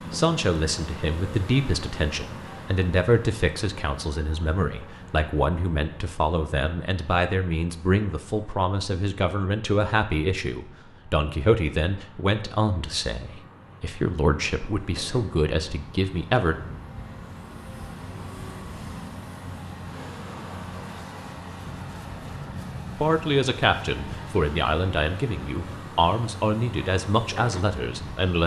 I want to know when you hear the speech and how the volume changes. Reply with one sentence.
The speech can be heard from 0.1 to 16.6 s, at a steady volume; and from 22.9 to 28.4 s, at a steady volume.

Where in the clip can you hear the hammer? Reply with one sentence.
The hammer can't be heard in this clip.